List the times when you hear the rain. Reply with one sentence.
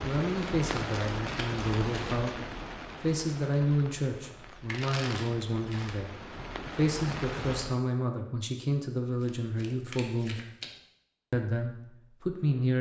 You can hear the rain from 0.0 to 7.8 s.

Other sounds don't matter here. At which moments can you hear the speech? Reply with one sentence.
The speech can be heard from 0.0 to 10.4 s and from 11.3 to 12.7 s.